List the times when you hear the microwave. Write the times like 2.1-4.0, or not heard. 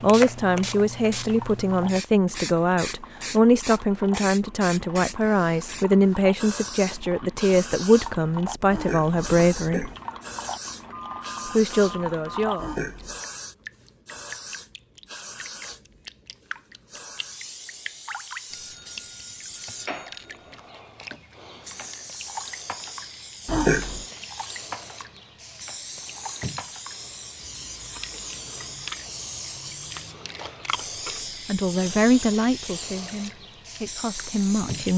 not heard.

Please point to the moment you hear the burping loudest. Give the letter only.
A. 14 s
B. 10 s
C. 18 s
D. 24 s
D.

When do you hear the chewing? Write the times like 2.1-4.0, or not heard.
not heard.